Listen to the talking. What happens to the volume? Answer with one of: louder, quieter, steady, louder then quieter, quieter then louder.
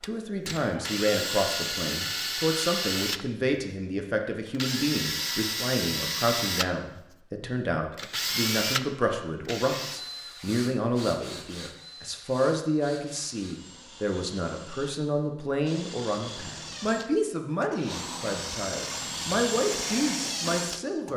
steady.